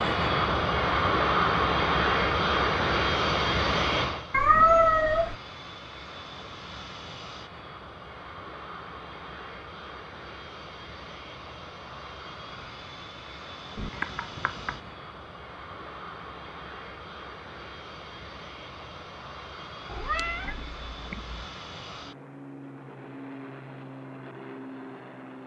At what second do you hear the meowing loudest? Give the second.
5 s.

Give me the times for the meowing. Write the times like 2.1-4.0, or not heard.
4.3-5.3, 13.8-14.8, 19.9-21.4.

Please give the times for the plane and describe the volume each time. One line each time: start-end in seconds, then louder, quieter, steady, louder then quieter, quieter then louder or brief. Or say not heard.
0.0-25.4 quieter.